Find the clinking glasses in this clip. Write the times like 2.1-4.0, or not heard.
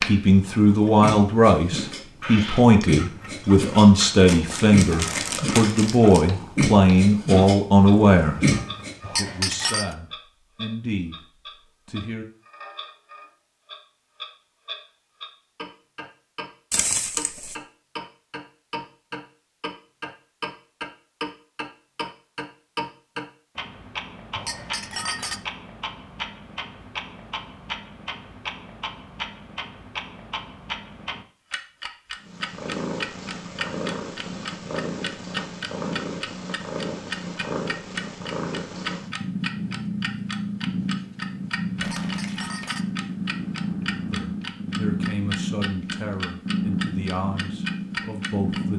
9.0-9.9, 24.4-25.4, 41.8-42.9.